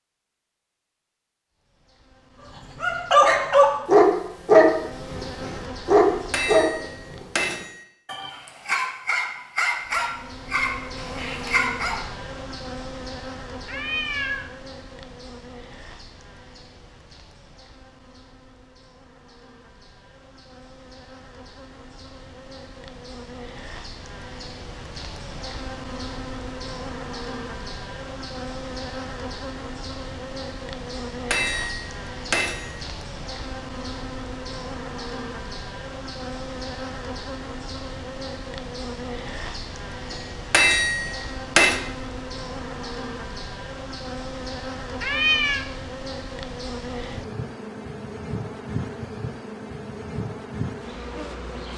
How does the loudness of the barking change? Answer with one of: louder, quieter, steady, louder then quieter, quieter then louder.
quieter.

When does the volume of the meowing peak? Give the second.
45 s.